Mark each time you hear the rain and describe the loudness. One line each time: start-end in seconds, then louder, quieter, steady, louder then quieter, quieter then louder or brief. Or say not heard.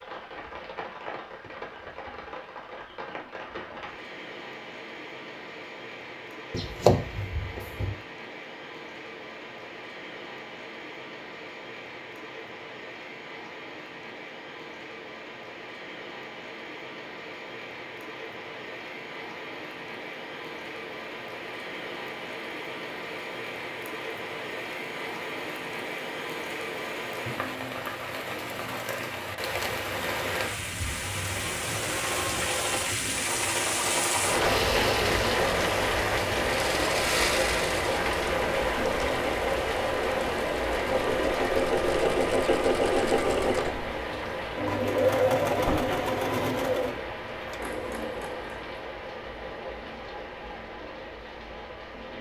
0.0-52.1 louder then quieter.